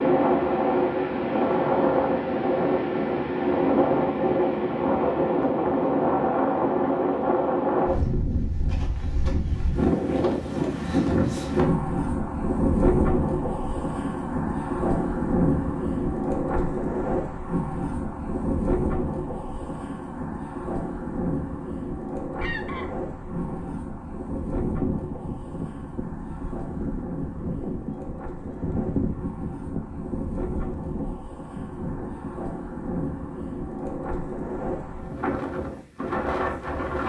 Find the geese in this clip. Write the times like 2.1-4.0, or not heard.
22.4-32.3.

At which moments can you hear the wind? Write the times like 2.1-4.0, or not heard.
0.0-37.0.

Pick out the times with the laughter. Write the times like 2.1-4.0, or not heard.
not heard.